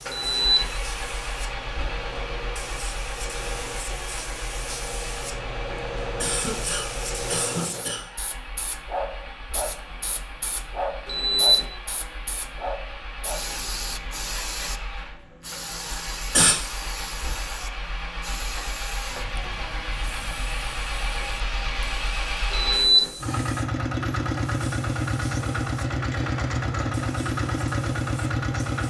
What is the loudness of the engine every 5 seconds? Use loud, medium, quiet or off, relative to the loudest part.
medium, quiet, quiet, medium, loud, loud.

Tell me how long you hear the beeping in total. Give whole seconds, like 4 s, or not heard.
2 s.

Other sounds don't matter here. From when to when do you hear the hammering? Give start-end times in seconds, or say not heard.
not heard.